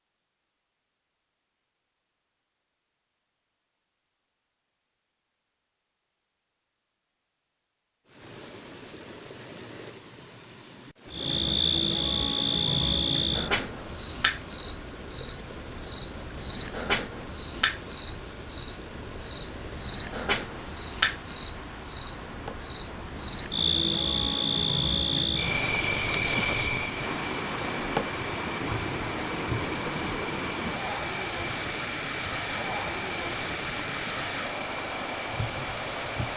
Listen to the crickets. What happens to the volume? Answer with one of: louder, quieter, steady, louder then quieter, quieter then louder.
quieter.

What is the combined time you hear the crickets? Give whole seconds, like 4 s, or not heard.
25 s.